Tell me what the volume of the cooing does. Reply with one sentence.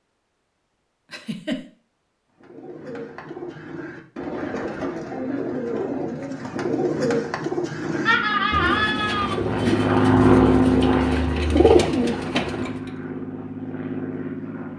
The loudness of the cooing goes up.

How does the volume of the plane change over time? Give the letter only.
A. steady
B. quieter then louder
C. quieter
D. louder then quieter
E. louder
D.